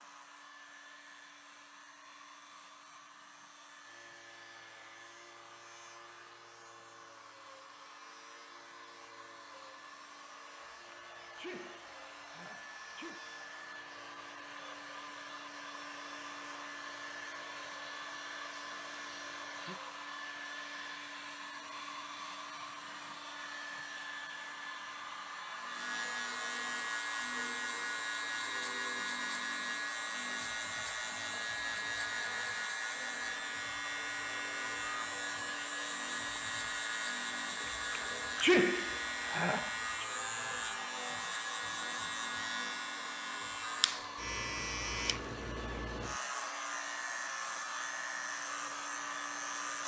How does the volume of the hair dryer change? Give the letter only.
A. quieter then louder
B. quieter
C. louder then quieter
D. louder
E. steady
D.